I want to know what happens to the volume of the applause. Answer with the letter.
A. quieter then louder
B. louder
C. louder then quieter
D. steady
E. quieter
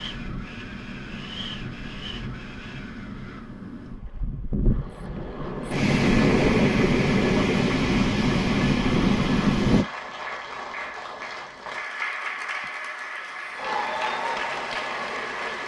B.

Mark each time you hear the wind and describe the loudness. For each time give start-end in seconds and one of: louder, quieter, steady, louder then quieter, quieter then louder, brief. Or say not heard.
0.0-9.8 louder.